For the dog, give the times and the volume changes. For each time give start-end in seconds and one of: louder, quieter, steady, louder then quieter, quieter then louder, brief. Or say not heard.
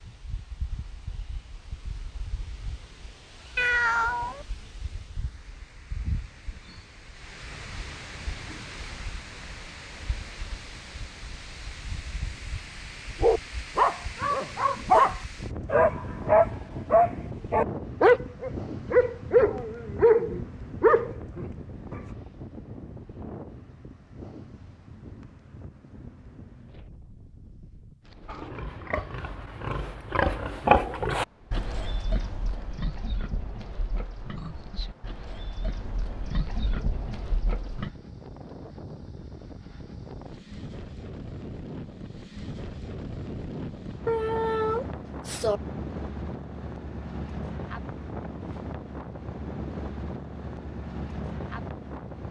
13.2-21.4 steady.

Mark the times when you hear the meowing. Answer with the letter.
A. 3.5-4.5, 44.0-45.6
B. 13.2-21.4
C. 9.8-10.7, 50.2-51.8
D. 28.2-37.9
A.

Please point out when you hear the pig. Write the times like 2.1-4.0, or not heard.
28.2-37.9.